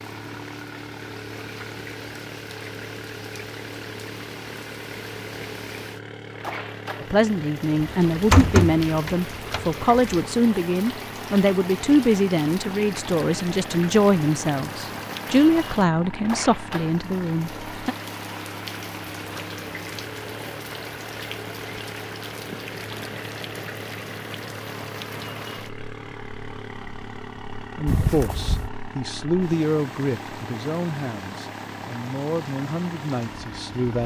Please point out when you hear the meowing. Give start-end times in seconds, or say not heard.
not heard.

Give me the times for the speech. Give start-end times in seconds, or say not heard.
7.0-17.9, 27.7-34.0.